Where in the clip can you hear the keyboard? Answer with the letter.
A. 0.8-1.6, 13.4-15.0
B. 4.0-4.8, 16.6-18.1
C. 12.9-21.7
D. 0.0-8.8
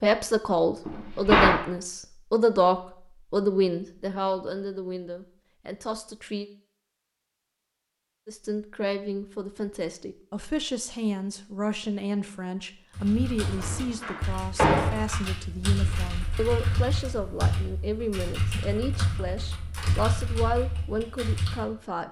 C.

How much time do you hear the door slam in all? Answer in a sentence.
You can hear the door slam for 2 seconds altogether.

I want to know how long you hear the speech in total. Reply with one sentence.
The speech can be heard for 20 seconds in total.